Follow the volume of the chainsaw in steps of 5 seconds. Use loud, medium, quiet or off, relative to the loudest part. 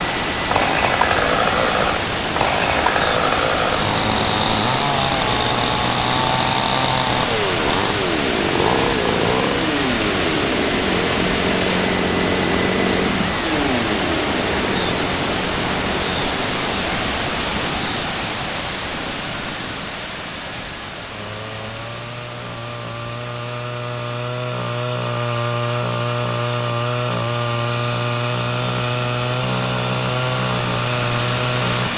loud, loud, loud, medium, medium, loud, loud.